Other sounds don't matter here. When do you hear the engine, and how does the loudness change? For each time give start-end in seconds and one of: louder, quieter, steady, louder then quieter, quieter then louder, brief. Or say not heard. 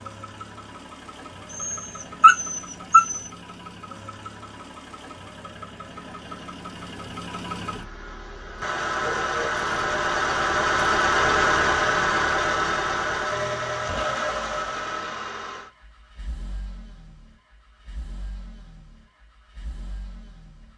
0.0-20.7 louder then quieter.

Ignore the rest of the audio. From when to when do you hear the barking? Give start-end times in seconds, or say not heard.
1.5-3.3.